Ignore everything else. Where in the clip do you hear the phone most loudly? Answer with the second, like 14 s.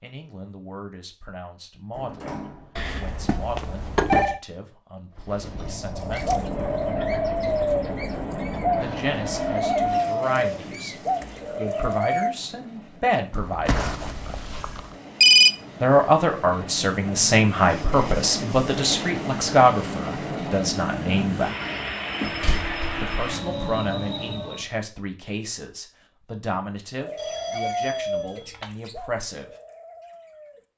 15 s.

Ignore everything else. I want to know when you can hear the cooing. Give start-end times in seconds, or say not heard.
6.0-12.3, 26.9-30.6.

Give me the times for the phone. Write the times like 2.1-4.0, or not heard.
2.8-4.4, 13.7-15.5, 27.1-28.7.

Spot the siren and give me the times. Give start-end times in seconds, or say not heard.
not heard.